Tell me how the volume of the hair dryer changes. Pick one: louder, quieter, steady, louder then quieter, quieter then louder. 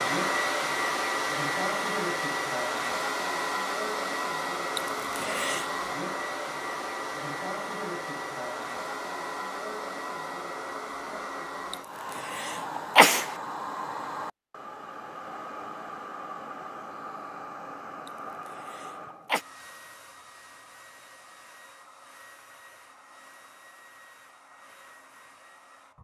quieter.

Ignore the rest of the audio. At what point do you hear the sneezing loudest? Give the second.
13 s.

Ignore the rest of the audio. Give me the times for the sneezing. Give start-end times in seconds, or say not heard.
4.8-5.7, 11.7-13.3, 18.1-19.4.